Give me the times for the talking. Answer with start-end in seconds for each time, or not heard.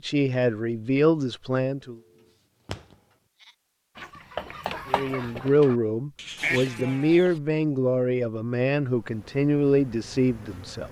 0.0-1.9, 4.9-10.8.